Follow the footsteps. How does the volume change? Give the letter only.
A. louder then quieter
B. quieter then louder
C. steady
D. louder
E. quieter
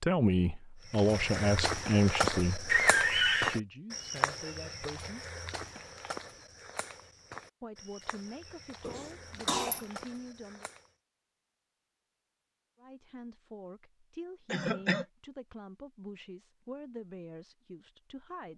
E.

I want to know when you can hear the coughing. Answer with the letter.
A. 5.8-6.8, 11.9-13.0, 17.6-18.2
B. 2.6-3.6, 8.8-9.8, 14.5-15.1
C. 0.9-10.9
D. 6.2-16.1
B.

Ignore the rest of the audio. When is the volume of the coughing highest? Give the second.
3 s.